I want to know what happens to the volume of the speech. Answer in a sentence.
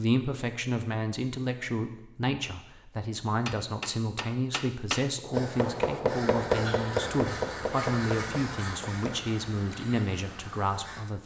The volume of the speech stays about the same.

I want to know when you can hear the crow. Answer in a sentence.
You can hear the crow from 5.3 to 11.0 s.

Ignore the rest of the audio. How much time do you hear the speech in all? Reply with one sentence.
You can hear the speech for 11 seconds altogether.